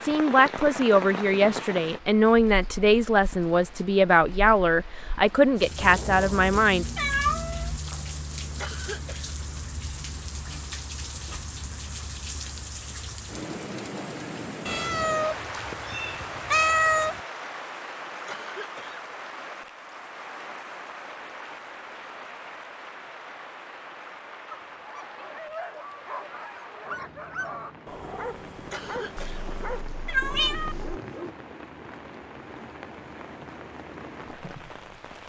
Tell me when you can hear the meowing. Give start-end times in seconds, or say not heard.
5.8-7.8, 14.7-17.2, 29.1-31.0.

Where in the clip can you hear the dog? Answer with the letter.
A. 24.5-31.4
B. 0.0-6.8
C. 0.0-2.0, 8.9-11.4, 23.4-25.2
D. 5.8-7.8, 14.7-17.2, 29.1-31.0
A.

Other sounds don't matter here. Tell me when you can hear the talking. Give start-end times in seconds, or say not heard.
0.0-6.8.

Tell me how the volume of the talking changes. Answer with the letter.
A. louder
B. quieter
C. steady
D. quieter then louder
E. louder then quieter
C.